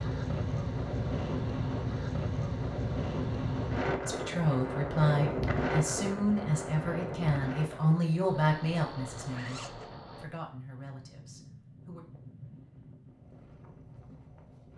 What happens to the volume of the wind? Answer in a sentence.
The loudness of the wind goes down.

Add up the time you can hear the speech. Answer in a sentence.
You can hear the speech for 8 seconds altogether.